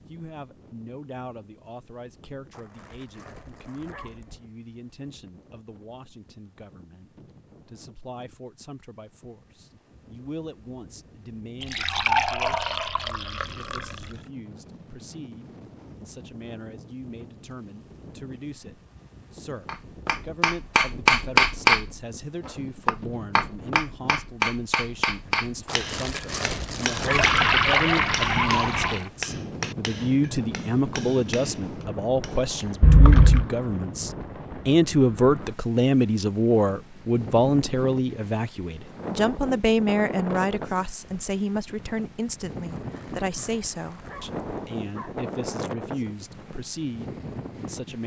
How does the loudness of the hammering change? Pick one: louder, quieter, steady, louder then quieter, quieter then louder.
quieter.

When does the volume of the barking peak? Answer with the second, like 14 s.
27 s.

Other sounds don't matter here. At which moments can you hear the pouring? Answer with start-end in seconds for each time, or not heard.
11.6-14.2, 27.1-29.1, 32.8-33.5.